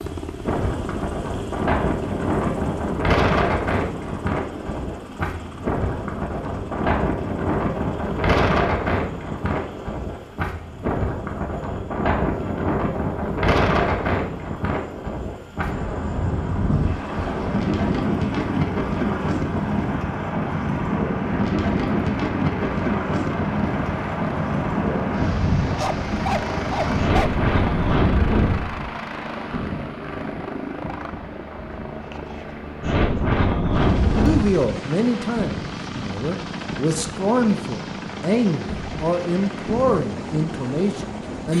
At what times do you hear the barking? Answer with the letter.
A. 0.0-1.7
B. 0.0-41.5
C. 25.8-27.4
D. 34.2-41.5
C.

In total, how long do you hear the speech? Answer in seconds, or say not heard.
7 s.